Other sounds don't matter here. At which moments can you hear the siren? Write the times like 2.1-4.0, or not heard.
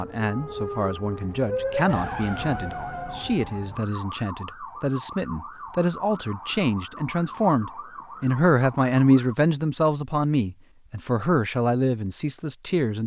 0.0-9.3.